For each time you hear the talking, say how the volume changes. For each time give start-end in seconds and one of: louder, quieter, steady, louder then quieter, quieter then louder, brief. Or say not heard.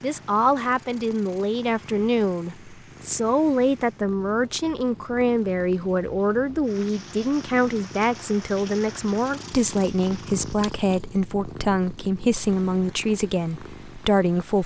0.0-14.6 steady.